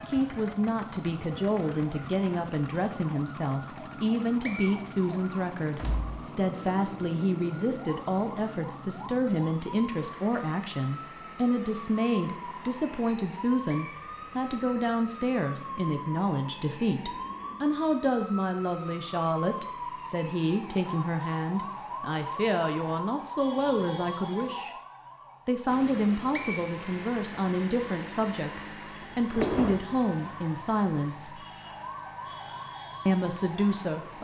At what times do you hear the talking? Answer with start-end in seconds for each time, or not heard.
0.1-24.8, 25.4-31.4, 33.0-34.1.